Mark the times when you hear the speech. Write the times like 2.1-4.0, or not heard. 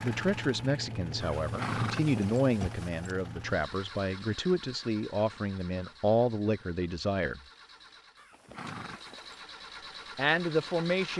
0.0-7.4, 10.2-11.1.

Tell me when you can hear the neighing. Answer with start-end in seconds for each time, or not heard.
1.2-3.1, 8.2-9.4.